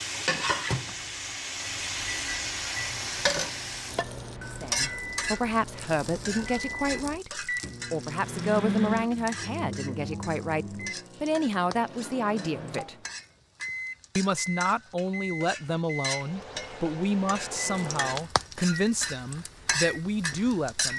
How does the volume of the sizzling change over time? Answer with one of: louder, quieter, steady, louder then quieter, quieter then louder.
quieter then louder.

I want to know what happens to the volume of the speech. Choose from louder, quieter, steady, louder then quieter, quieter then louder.
steady.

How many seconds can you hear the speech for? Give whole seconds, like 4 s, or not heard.
15 s.